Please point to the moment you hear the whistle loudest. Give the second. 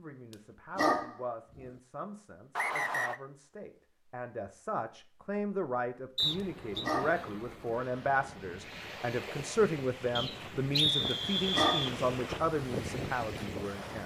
11 s.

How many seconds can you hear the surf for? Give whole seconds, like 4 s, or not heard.
8 s.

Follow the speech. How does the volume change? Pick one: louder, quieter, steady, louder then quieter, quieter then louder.
louder.